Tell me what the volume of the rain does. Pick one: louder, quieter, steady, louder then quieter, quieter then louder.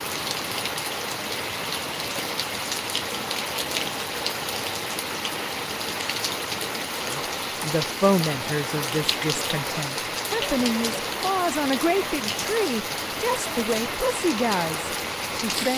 steady.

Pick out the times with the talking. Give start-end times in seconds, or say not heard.
7.0-15.7.